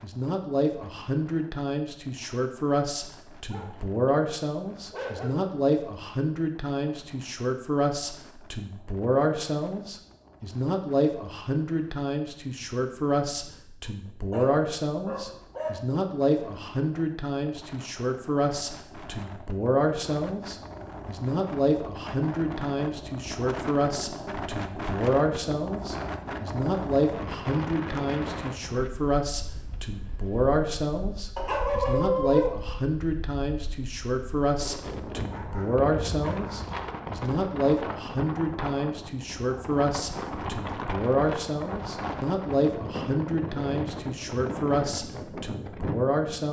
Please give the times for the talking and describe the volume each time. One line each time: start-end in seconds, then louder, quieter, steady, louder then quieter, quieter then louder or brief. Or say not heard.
0.0-46.4 steady.